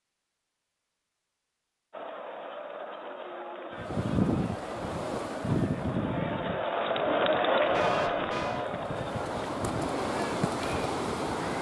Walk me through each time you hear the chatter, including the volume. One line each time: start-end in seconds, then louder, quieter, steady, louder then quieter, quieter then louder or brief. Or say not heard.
1.9-11.5 louder then quieter.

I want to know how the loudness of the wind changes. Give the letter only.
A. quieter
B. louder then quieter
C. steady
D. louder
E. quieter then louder
E.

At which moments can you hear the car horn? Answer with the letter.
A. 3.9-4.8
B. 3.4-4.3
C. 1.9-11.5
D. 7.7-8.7
D.